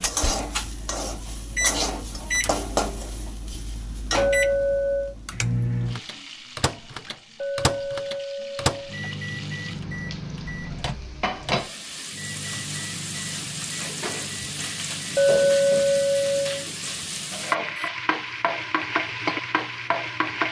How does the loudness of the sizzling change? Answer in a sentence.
The loudness of the sizzling goes down, then up.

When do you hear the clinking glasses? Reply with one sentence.
You can hear the clinking glasses from 4.2 to 5.2 s, from 7.4 to 9.0 s and from 15.2 to 16.6 s.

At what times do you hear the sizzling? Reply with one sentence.
The sizzling can be heard from 0.0 to 20.4 s.